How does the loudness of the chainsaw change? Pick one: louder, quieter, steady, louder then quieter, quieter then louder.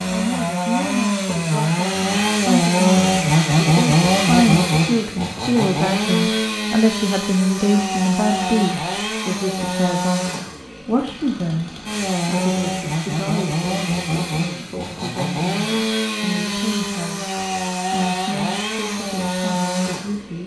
quieter.